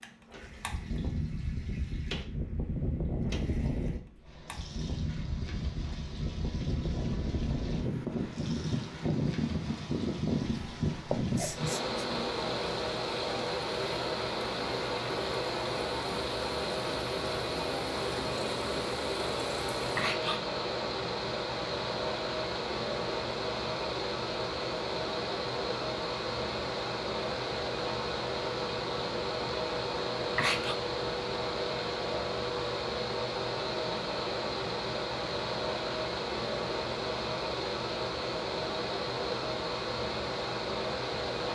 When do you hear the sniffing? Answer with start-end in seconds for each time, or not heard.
11.1-12.1, 19.8-20.4, 30.1-30.8.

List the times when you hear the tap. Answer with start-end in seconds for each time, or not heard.
0.0-20.1.